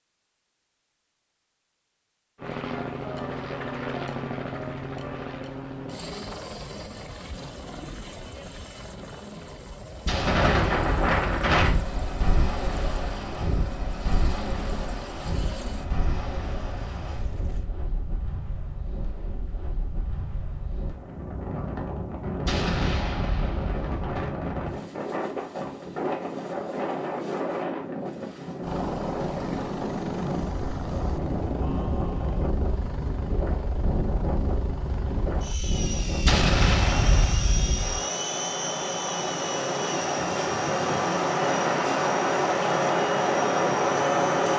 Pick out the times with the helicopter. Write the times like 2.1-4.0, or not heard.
2.4-17.7, 28.6-44.4.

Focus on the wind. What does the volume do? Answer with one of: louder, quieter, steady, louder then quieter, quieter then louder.
quieter then louder.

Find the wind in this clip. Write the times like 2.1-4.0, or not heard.
10.1-44.5.